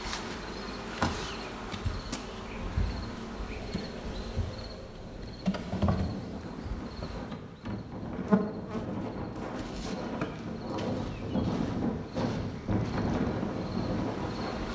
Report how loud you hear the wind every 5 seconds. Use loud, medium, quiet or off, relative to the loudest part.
quiet, medium, loud.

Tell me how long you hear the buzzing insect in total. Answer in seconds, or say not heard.
15 s.